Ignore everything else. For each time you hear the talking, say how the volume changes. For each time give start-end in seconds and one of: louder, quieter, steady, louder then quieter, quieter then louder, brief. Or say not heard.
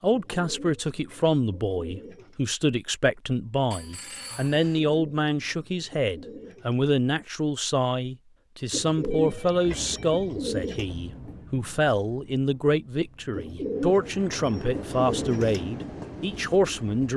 0.0-17.1 steady.